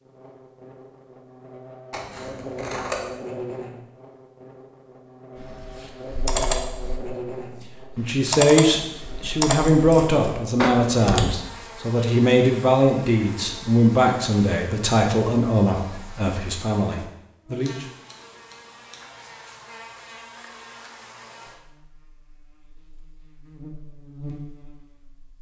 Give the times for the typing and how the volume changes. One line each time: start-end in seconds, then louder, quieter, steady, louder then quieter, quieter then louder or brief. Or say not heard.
5.3-11.3 quieter then louder.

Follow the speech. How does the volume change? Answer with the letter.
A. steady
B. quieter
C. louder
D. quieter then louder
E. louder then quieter
B.